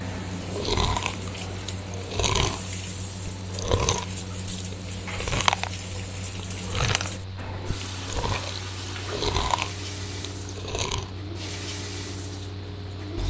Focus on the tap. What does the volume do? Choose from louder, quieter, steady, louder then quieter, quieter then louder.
steady.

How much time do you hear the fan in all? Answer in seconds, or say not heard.
13 s.